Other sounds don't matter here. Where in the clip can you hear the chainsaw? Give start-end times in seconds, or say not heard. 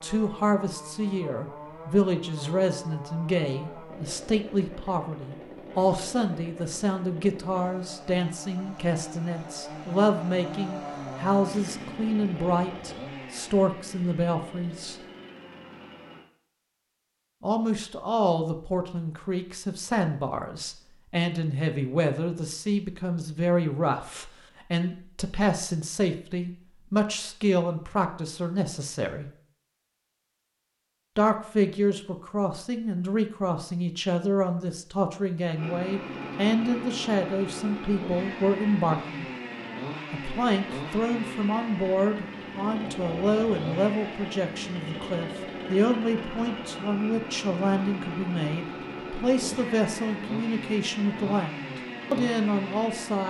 0.0-16.2, 35.5-53.2.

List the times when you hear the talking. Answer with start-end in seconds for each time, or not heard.
0.0-14.9, 17.4-29.3, 31.1-39.3, 40.1-53.2.